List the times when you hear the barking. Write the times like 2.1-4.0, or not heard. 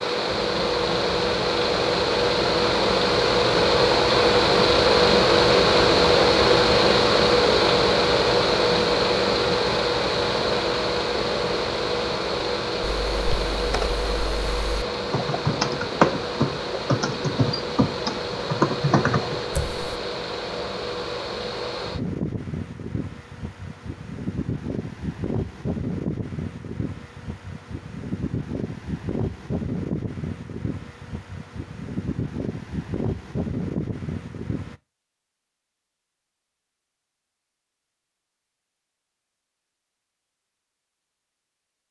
not heard.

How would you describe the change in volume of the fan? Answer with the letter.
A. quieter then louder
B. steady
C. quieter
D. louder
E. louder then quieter
C.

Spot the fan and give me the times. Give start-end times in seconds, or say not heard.
0.0-34.8.